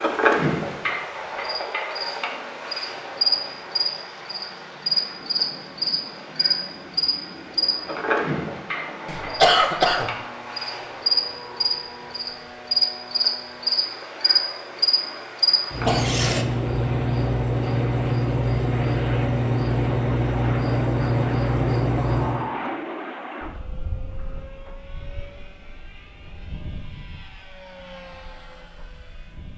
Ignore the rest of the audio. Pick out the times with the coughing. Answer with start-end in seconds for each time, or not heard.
9.1-10.1, 15.8-16.4.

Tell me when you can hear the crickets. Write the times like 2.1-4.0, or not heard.
0.0-22.4.